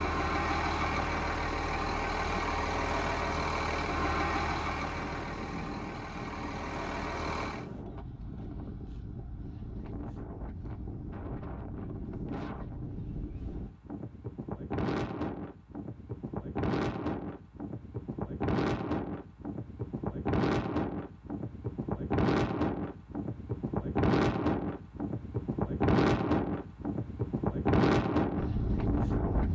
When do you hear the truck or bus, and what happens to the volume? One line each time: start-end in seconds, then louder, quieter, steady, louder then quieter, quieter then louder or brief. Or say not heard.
0.0-7.7 quieter.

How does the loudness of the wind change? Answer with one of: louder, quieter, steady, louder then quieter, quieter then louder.
louder.